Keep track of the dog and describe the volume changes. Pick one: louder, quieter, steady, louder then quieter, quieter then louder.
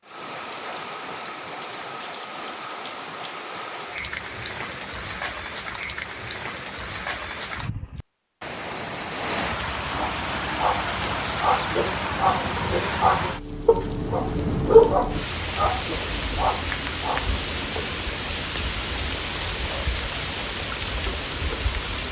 louder then quieter.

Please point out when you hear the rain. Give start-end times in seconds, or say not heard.
0.0-22.0.